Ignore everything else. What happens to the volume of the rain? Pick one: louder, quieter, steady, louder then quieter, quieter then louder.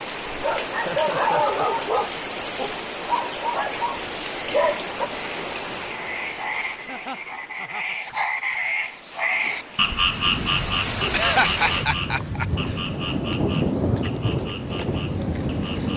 quieter then louder.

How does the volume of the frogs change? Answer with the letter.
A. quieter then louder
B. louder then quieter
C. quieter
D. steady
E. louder
B.